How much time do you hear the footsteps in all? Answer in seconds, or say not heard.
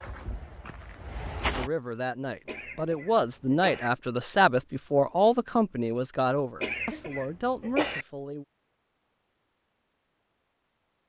2 s.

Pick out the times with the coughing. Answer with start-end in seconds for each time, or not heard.
2.5-3.9, 6.6-8.1.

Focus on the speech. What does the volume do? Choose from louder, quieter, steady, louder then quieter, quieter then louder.
louder then quieter.